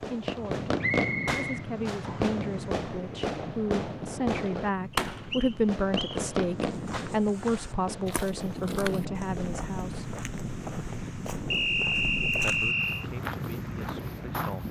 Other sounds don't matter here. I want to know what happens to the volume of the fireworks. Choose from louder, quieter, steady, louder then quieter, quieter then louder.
quieter.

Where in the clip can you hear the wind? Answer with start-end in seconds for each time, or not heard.
0.2-14.6.